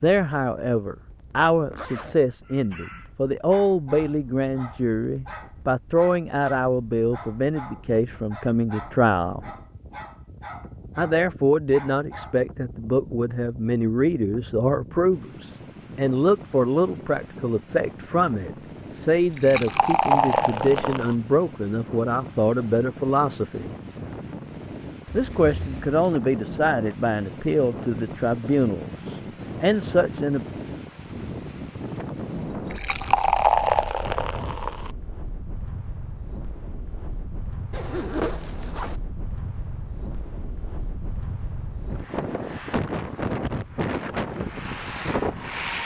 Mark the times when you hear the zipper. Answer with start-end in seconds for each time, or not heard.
1.7-2.2, 25.1-26.0, 37.7-39.0.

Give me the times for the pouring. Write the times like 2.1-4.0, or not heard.
19.1-21.1, 32.5-34.9.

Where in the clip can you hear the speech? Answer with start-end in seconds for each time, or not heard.
0.0-9.4, 10.9-23.7, 25.1-30.4.